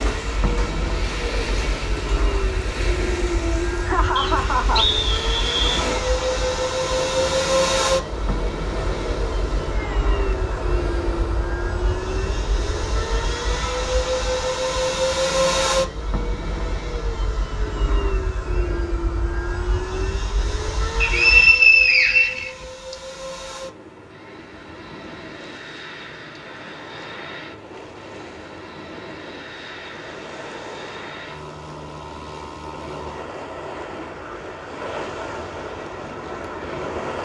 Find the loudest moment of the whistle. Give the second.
22 s.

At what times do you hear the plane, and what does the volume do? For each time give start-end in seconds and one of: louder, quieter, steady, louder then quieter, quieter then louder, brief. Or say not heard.
0.0-37.0 quieter.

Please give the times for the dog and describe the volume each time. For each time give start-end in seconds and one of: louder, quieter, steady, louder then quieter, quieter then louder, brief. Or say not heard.
not heard.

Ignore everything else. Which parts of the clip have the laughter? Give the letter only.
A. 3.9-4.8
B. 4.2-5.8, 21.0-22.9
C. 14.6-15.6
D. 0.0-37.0
A.